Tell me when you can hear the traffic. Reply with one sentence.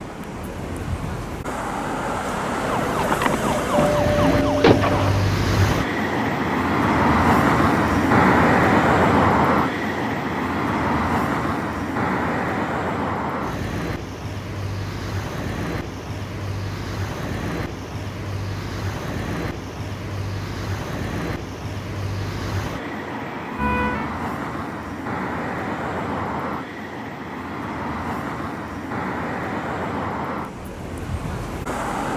You can hear the traffic from 0.0 to 32.1 s.